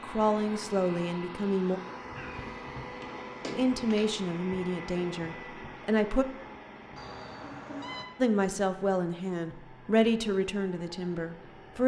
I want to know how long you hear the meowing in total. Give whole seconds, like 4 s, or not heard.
3 s.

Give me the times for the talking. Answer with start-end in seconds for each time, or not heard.
0.0-1.8, 3.5-6.2, 8.2-11.8.